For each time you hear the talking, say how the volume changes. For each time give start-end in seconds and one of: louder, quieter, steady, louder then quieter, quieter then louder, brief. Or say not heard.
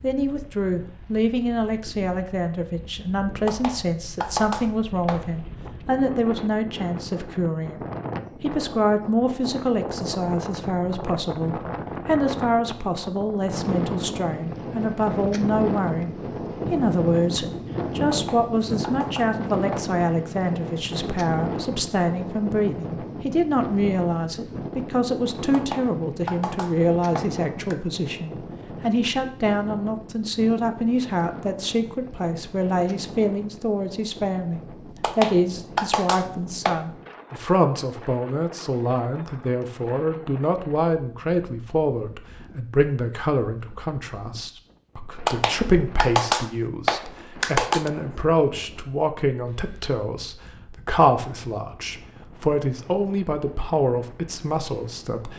0.0-55.3 steady.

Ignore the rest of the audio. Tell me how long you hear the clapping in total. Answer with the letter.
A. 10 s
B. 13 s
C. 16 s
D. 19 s
A.